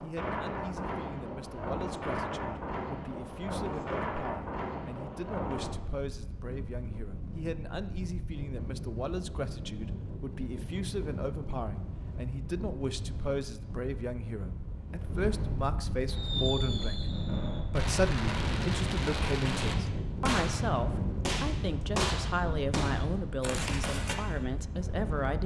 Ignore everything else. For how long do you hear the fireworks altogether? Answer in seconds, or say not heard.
8 s.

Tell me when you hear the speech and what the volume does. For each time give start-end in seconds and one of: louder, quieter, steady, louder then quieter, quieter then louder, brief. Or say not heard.
0.0-25.4 louder.